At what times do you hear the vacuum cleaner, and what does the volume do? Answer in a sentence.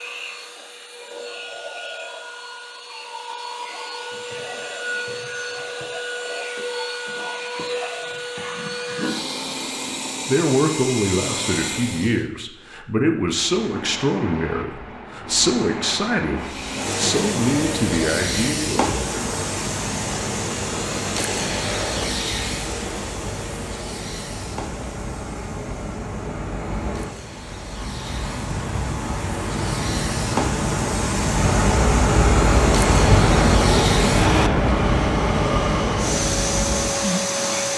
You can hear the vacuum cleaner from 0.0 to 12.2 s, getting louder; and from 16.4 to 37.7 s, getting quieter then louder.